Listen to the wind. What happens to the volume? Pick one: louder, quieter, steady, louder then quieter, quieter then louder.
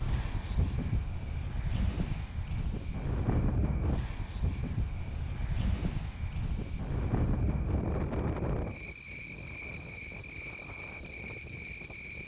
quieter.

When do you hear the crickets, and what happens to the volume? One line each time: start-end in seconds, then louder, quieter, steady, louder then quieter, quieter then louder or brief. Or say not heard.
0.0-12.2 louder.